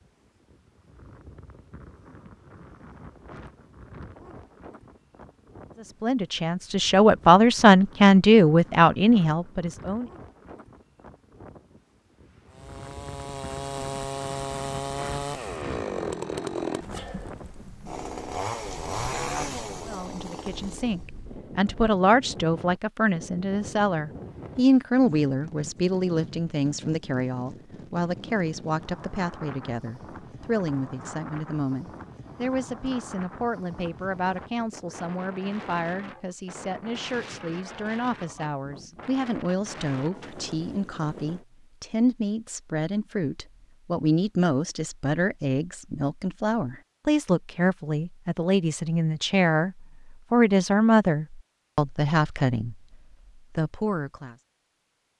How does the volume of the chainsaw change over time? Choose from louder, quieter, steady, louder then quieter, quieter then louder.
steady.